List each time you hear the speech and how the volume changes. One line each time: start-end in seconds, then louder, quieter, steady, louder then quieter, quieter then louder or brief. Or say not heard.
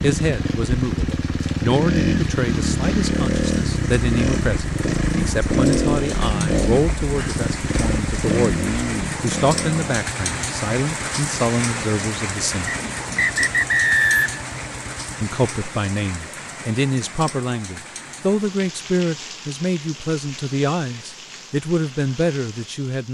0.0-12.8 steady
15.2-23.0 steady.